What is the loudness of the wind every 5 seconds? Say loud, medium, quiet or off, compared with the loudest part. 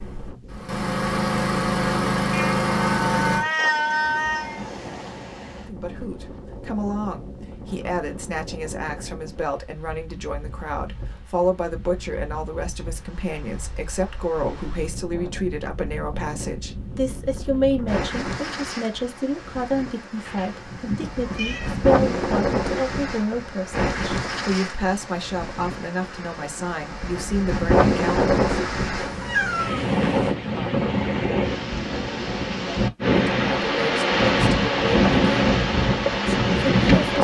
quiet, quiet, quiet, quiet, medium, medium, loud, loud.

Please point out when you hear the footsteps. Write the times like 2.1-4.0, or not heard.
not heard.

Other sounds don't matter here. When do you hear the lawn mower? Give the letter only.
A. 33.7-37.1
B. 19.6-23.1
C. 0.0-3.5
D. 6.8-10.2
C.